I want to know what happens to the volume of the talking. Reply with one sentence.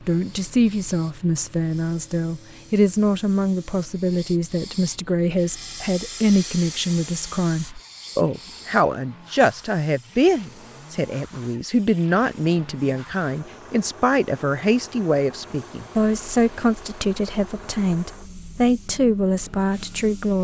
The loudness of the talking stays about the same.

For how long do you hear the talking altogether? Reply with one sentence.
You can hear the talking for 20 seconds altogether.